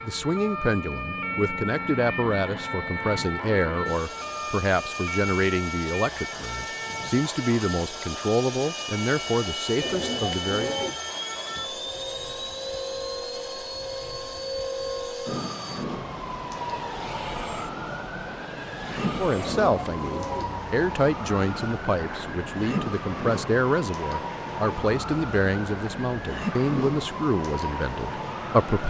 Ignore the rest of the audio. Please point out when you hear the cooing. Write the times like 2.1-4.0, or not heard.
9.8-10.9, 19.3-20.4.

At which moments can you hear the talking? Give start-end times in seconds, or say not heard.
0.0-10.8, 19.1-28.8.